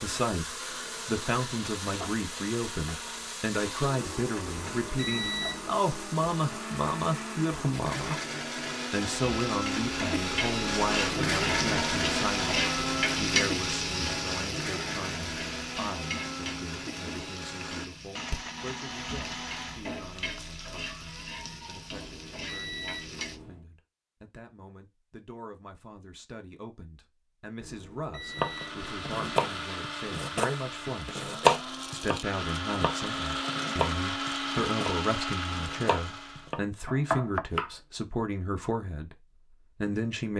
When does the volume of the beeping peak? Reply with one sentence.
The loudest moment of the beeping is at 5 seconds.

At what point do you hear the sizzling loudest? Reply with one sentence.
The volume of the sizzling peaks at 13 seconds.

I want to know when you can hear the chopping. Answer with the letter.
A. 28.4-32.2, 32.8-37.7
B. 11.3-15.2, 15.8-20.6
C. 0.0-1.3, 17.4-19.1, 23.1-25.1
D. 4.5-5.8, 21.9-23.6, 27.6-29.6
A.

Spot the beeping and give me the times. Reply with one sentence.
You can hear the beeping from 4.5 to 5.8 s, from 21.9 to 23.6 s and from 27.6 to 29.6 s.